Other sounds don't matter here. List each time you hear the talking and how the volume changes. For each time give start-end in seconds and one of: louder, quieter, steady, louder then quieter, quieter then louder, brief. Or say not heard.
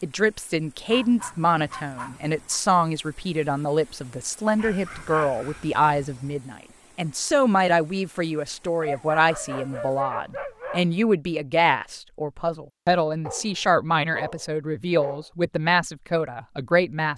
0.0-17.1 steady.